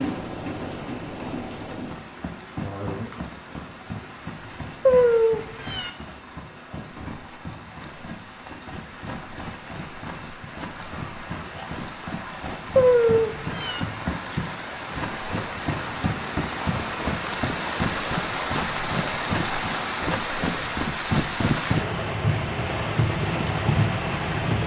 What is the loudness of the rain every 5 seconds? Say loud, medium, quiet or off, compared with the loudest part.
medium, quiet, medium, loud, loud.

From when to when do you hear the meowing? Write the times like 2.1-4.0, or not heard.
4.8-5.9, 12.8-13.8.